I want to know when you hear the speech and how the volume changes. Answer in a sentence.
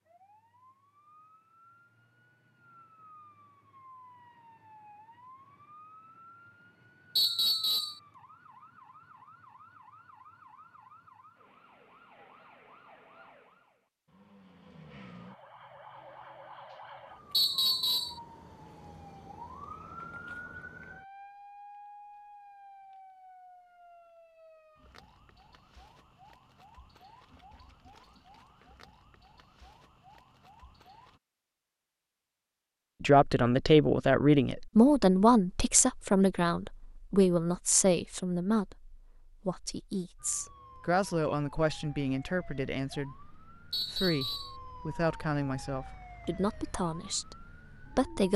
The speech can be heard from 33.0 to 48.3 s, getting quieter.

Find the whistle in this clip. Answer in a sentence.
You can hear the whistle from 7.2 to 8.0 s, from 17.3 to 18.2 s and from 43.7 to 44.5 s.